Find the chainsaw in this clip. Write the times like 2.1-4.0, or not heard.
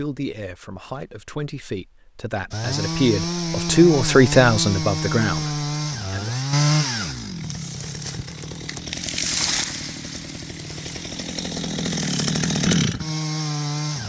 2.5-14.0.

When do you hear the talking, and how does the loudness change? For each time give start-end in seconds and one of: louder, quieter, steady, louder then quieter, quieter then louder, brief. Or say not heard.
0.0-6.5 louder then quieter.